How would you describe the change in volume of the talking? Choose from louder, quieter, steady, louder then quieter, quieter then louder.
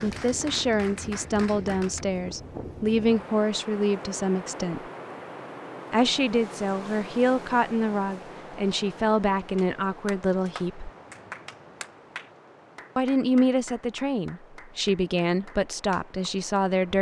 steady.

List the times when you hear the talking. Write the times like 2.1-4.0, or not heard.
0.0-4.8, 5.9-10.9, 12.9-16.9.